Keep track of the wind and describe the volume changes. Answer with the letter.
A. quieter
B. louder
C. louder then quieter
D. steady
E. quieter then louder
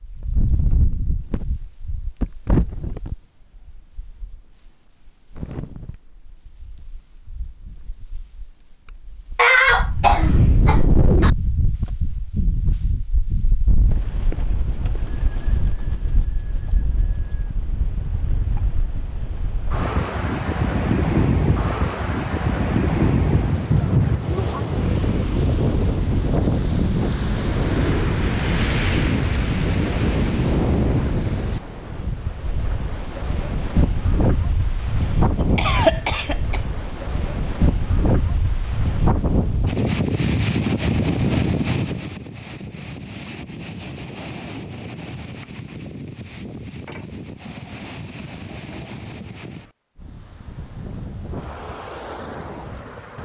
C.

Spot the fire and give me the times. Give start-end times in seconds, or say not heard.
not heard.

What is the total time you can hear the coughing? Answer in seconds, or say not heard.
4 s.